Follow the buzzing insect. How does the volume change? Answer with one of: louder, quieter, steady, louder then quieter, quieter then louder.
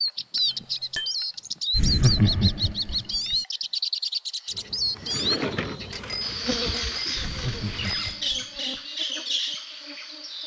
quieter.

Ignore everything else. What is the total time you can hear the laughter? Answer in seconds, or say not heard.
3 s.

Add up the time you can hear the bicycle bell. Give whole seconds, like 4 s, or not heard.
3 s.